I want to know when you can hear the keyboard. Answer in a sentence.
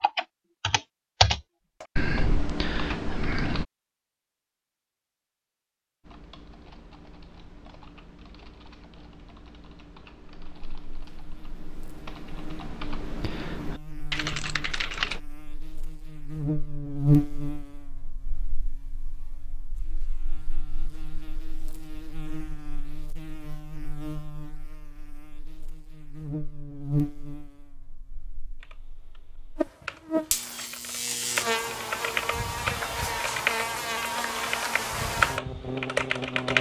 The keyboard can be heard from 0.0 to 3.6 s, from 6.0 to 15.2 s and from 28.6 to 36.5 s.